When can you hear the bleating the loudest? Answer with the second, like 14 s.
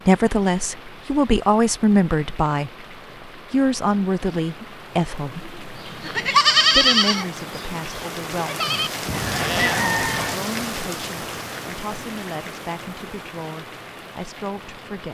7 s.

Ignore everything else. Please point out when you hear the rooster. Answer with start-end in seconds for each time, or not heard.
9.1-10.3.